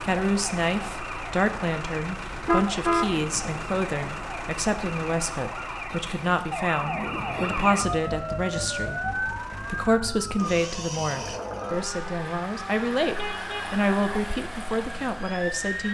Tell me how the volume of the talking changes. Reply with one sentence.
The loudness of the talking stays about the same.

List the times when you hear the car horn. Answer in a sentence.
You can hear the car horn from 2.3 to 3.1 s and from 13.2 to 13.8 s.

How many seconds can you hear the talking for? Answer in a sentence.
You can hear the talking for 16 seconds altogether.